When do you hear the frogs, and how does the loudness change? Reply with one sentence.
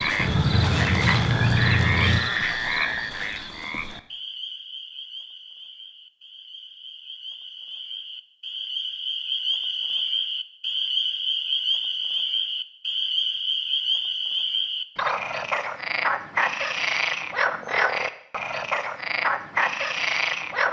You can hear the frogs from 0.0 to 20.6 s, getting quieter then louder.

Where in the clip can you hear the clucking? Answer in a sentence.
The clucking can be heard from 0.1 to 2.2 s.